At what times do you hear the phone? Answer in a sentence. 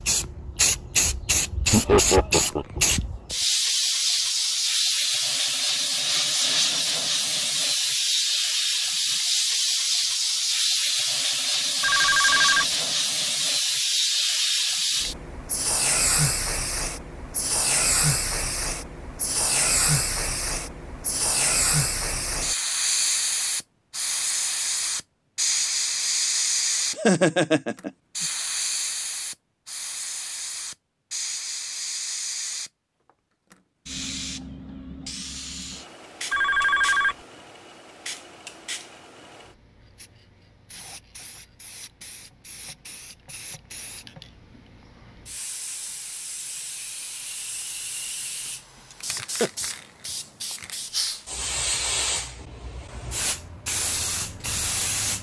The phone can be heard from 11.8 to 12.7 s and from 36.3 to 37.1 s.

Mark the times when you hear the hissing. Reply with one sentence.
The hissing can be heard from 0.0 to 55.1 s.